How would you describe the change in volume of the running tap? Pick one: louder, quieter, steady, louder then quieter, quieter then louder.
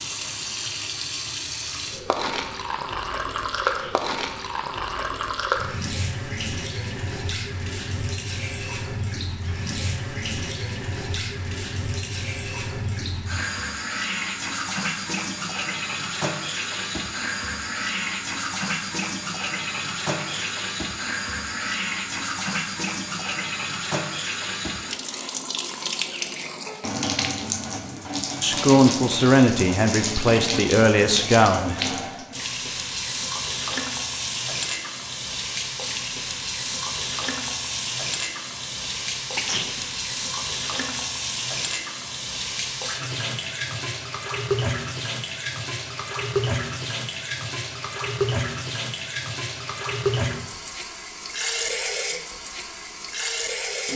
steady.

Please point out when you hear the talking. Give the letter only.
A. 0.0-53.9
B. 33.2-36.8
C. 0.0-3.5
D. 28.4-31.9
D.